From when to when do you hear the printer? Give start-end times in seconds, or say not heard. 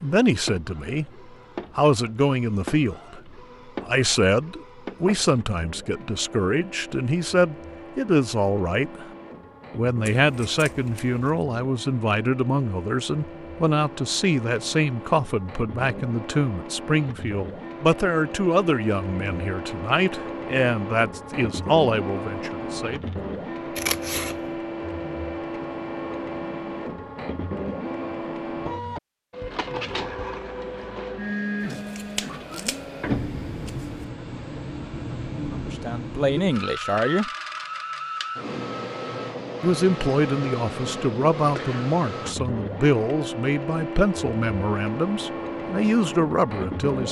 0.0-47.0.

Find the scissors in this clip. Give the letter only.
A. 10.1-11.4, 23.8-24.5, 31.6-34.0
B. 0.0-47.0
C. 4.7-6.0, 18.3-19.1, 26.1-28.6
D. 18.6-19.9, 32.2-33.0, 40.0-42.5
A.